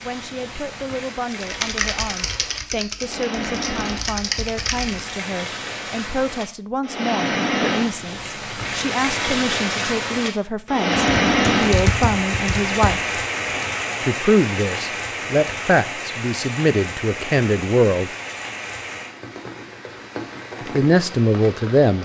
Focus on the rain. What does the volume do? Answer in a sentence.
The loudness of the rain goes up, then down.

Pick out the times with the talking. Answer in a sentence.
You can hear the talking from 0.0 to 13.1 s, from 14.0 to 18.1 s and from 20.6 to 22.0 s.